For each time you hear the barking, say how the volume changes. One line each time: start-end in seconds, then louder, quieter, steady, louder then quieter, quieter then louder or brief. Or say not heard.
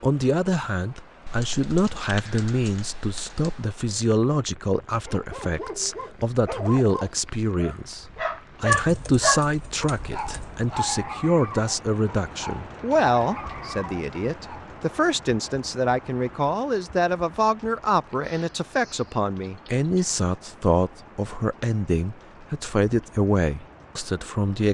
5.0-14.7 louder then quieter.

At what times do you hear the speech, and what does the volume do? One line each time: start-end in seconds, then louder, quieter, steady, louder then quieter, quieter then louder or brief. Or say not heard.
0.0-24.6 steady.